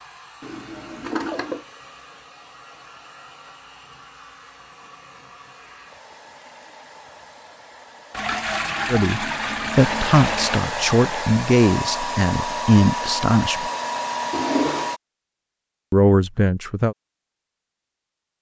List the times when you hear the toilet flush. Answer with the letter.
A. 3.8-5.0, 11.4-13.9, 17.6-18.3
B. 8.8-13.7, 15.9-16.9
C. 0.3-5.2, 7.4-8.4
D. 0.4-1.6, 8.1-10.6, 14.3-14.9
D.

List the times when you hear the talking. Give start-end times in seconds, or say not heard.
8.8-13.7, 15.9-16.9.